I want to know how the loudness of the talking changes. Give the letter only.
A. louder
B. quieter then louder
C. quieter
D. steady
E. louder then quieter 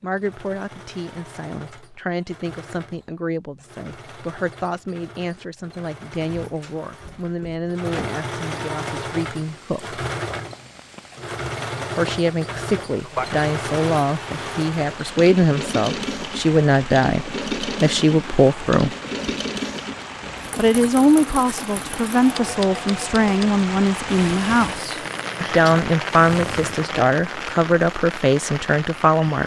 A.